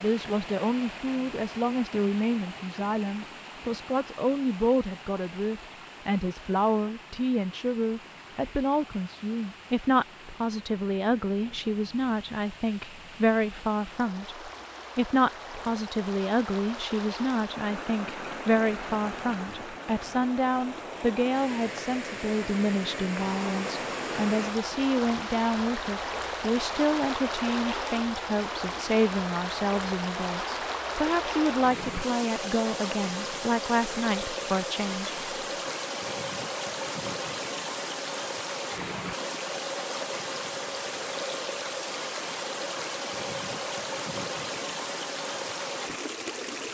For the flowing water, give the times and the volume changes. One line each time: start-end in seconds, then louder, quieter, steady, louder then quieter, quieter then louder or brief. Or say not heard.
0.0-46.6 louder.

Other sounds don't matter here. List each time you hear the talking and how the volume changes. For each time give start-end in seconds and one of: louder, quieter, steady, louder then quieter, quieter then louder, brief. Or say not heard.
0.0-35.7 steady.